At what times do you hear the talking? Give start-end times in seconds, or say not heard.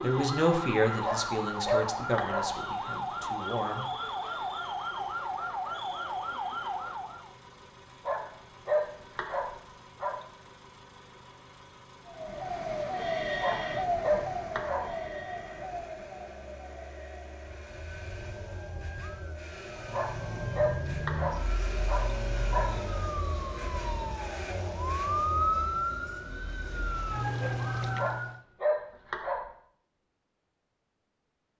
0.0-3.9.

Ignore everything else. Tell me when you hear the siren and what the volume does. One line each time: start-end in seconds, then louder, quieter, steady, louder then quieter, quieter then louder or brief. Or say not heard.
0.0-7.3 steady
12.1-28.4 quieter then louder.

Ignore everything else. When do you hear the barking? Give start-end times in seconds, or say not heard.
1.0-2.5, 8.1-10.2, 13.4-14.9, 19.9-22.8, 27.9-29.4.